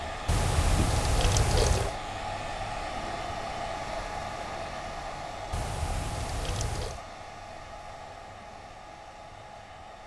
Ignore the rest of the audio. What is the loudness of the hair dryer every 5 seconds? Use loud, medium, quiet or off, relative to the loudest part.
loud, medium.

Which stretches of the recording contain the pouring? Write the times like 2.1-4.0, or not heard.
0.2-1.9, 5.5-7.0.